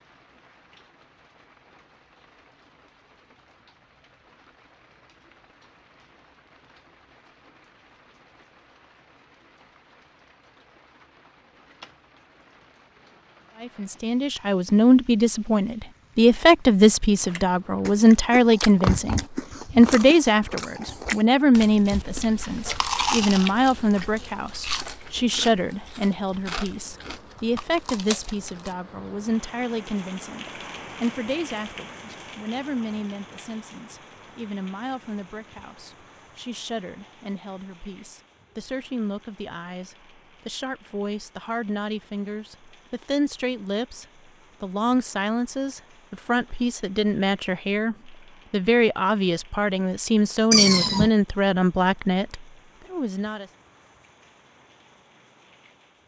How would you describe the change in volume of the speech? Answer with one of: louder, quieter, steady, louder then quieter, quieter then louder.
quieter then louder.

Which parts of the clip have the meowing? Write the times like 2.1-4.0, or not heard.
50.5-51.1.